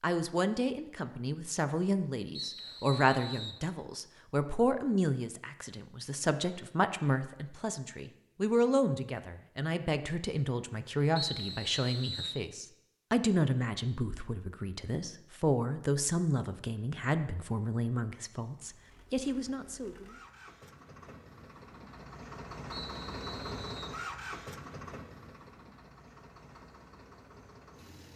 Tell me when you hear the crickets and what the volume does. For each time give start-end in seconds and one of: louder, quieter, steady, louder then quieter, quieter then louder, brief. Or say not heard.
not heard.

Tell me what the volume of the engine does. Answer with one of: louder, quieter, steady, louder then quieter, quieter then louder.
louder then quieter.